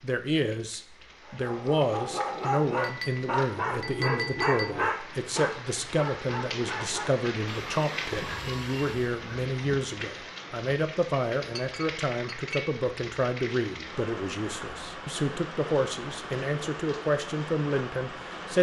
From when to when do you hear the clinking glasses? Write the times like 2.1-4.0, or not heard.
2.8-4.7, 11.6-12.8.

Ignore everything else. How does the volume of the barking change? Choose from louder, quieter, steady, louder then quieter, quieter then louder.
quieter.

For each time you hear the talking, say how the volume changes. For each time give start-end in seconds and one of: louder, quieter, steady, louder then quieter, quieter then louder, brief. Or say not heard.
0.0-18.5 steady.